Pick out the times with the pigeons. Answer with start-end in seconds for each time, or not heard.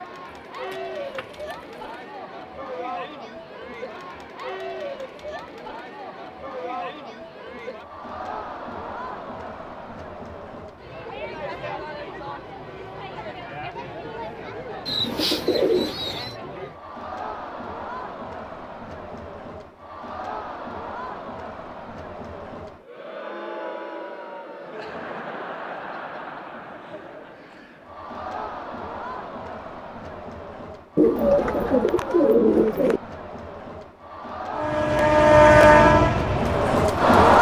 0.7-1.4, 14.8-16.4, 30.9-33.0.